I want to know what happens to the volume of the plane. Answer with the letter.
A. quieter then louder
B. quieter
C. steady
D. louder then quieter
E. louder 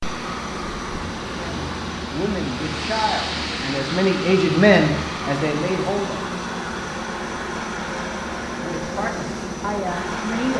C.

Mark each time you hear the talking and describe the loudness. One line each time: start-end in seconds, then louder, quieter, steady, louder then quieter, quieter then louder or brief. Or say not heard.
1.4-6.2 louder then quieter
8.6-10.5 brief.